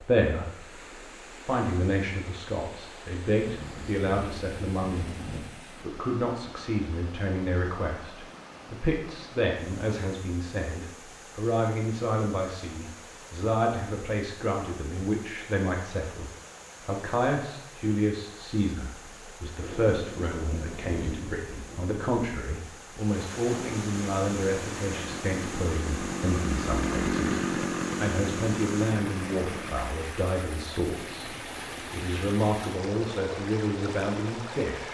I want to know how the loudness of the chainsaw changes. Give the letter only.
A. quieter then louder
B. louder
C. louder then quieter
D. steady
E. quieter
C.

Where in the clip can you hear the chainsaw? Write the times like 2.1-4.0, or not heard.
23.4-29.9.